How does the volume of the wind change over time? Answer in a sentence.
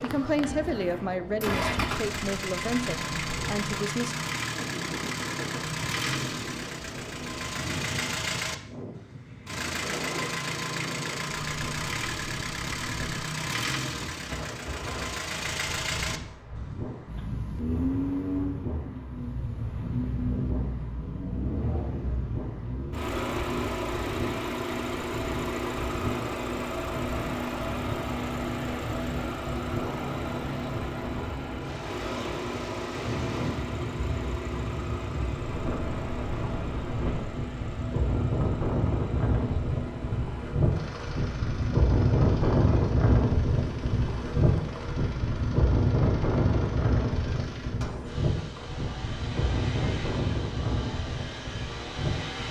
The volume of the wind goes up.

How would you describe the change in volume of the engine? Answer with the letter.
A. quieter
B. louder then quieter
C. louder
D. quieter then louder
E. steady
A.